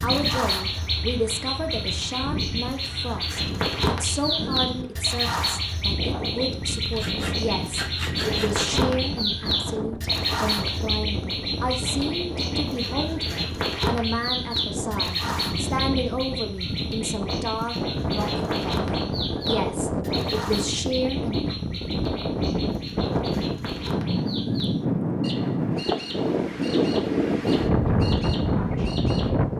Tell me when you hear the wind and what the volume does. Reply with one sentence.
The wind can be heard from 0.0 to 29.5 s, getting louder.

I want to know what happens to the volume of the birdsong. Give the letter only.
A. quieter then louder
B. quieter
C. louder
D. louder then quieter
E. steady
B.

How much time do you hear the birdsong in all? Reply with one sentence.
The birdsong can be heard for 29 seconds in total.